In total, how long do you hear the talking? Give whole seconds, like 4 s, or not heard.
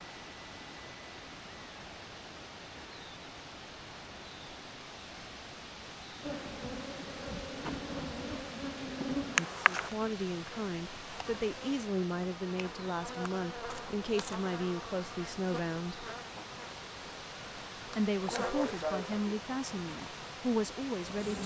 10 s.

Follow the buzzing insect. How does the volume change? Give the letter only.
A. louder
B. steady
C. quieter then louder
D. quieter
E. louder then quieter
C.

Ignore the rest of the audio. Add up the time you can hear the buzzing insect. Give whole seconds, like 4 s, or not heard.
15 s.